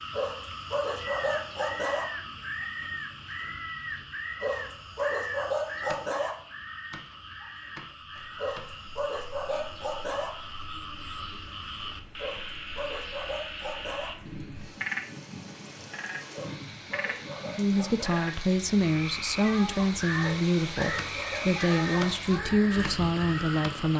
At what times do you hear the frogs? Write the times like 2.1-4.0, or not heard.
0.0-23.9.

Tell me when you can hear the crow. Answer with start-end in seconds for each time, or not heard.
0.9-8.7, 19.9-23.8.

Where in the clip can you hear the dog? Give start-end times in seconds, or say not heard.
0.1-2.0, 4.4-6.3, 8.3-10.3, 12.2-14.1, 16.3-18.2, 20.2-22.1.